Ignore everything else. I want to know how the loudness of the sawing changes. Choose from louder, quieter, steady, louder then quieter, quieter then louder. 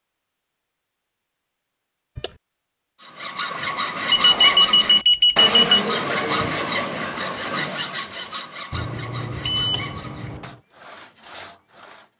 quieter.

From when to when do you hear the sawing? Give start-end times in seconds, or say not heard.
3.0-12.1.